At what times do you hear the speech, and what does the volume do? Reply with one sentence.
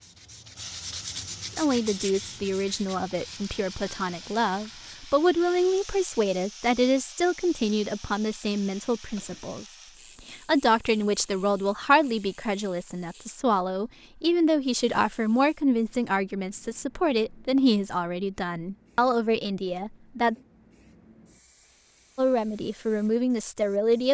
The speech can be heard from 1.6 to 20.4 s, at a steady volume; and briefly from 22.1 to 24.1 s.